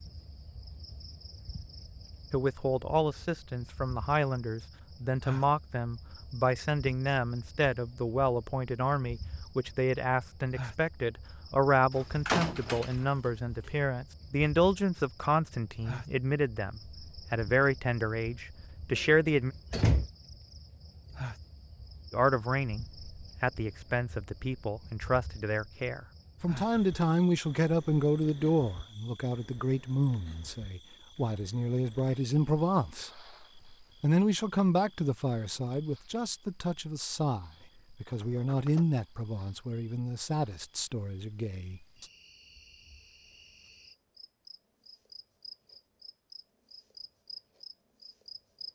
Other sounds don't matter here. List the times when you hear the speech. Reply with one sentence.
You can hear the speech from 2.3 to 19.6 s, from 22.1 to 33.1 s and from 34.0 to 42.0 s.